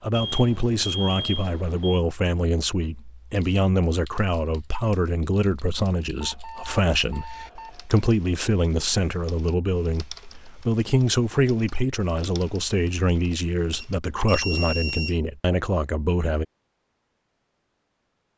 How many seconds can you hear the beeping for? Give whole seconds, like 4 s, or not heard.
5 s.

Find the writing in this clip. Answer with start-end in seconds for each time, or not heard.
not heard.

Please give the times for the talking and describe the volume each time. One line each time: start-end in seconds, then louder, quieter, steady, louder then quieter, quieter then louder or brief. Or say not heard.
0.0-16.4 steady.